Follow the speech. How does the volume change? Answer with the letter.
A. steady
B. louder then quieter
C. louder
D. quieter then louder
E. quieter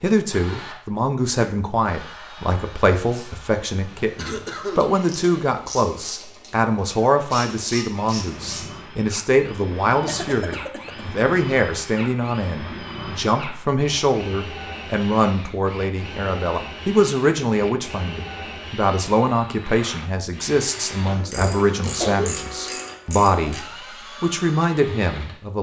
A.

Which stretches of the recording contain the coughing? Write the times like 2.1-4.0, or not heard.
4.2-5.0, 10.1-11.1, 21.1-22.3.